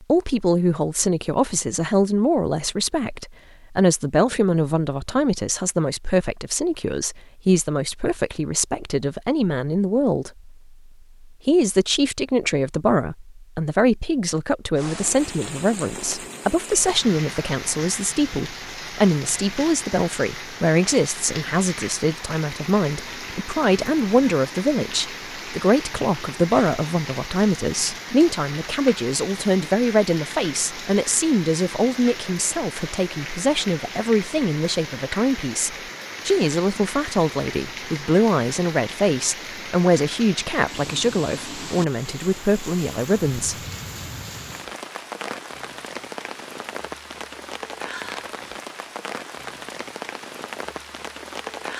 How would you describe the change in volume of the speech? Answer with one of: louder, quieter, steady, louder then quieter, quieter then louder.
steady.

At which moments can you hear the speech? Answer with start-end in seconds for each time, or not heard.
0.0-10.5, 11.4-43.5.